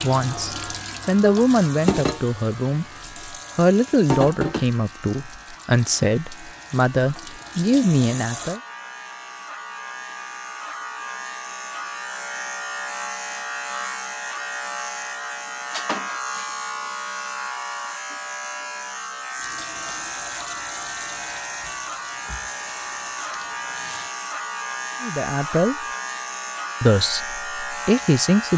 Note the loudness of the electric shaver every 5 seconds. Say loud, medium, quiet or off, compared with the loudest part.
medium, medium, loud, loud, loud, loud.